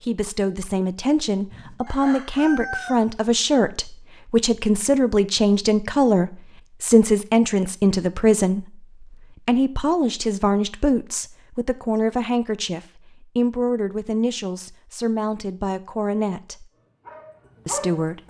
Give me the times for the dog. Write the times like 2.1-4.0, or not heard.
16.7-18.2.